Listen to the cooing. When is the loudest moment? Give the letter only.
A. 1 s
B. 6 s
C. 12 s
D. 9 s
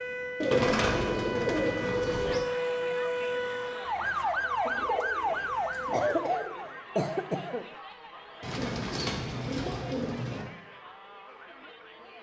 A.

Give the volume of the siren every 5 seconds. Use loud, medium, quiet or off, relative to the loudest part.
loud, loud, off.